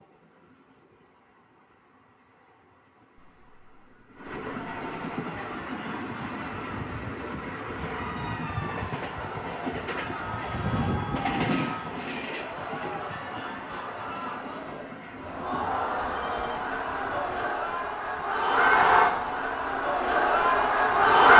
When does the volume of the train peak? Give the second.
11 s.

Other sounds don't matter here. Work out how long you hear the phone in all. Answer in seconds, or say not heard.
5 s.